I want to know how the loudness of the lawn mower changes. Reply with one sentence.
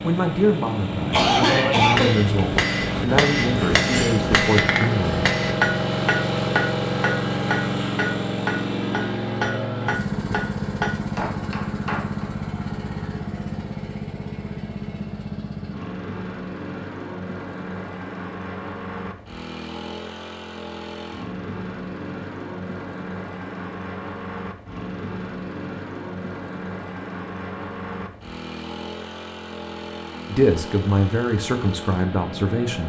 The volume of the lawn mower goes down.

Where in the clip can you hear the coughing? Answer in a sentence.
You can hear the coughing from 1.1 to 2.2 s.